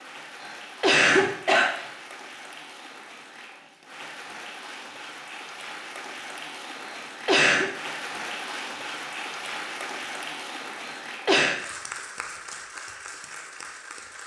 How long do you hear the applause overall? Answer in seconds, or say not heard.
14 s.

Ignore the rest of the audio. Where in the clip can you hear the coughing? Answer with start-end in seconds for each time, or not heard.
0.4-1.7, 6.8-7.7, 10.8-11.6.